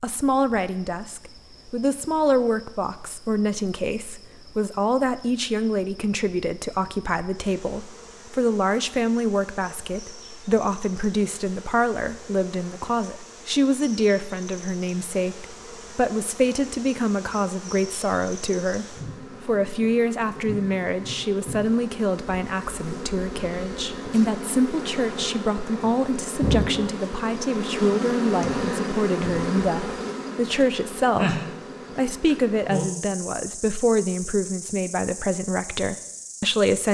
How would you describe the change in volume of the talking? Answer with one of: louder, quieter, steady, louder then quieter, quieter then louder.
steady.